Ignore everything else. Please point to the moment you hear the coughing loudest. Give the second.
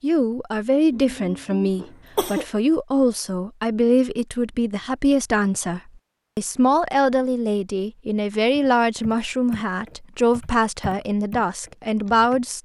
2 s.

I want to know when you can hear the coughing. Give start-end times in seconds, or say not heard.
0.9-2.5.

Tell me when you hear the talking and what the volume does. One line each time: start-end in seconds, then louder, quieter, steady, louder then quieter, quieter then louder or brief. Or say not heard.
0.0-12.5 steady.